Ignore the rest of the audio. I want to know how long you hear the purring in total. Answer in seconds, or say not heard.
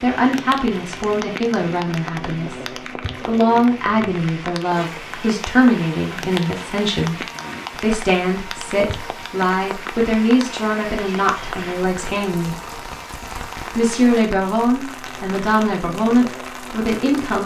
not heard.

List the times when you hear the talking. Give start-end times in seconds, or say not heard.
0.0-12.6, 13.7-17.4.